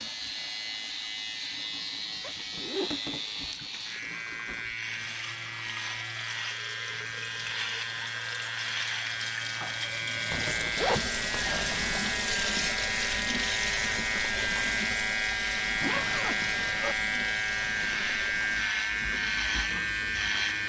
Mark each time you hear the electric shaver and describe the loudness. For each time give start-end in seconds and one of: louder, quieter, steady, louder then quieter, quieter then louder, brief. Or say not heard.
0.0-20.6 louder.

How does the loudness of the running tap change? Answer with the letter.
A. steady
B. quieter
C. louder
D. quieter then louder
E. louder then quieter
E.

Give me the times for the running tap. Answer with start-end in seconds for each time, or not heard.
0.0-20.6.